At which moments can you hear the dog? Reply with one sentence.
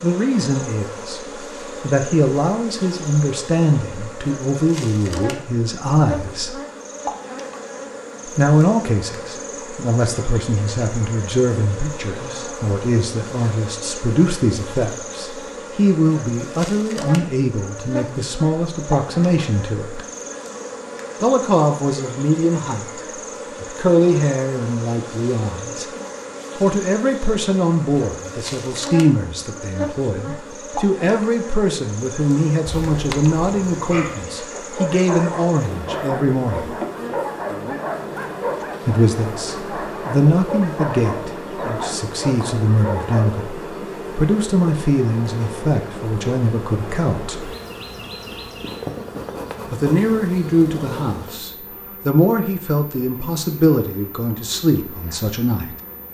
The dog can be heard from 32.6 to 43.5 s.